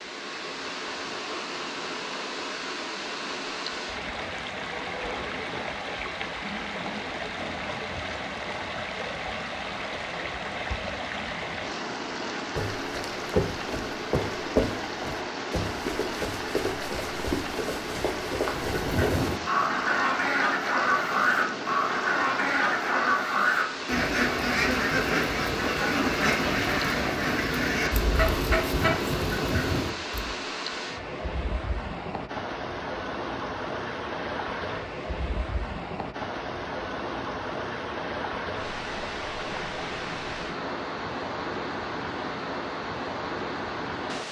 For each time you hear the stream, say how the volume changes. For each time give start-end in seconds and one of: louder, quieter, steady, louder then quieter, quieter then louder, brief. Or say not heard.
0.0-44.2 steady.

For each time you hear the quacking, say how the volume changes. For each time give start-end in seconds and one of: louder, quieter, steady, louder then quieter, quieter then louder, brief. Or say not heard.
18.4-30.3 steady.